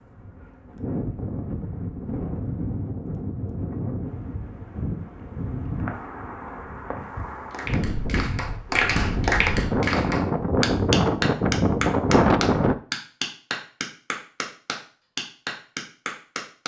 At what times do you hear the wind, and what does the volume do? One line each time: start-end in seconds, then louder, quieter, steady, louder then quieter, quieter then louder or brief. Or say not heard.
0.0-12.8 louder.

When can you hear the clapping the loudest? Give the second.
9 s.